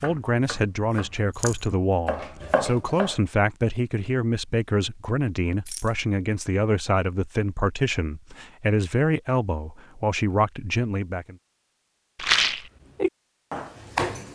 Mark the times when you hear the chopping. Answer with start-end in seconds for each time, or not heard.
0.0-3.2, 12.9-14.3.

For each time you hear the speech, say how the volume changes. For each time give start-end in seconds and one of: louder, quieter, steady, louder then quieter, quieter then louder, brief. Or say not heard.
0.0-11.3 steady.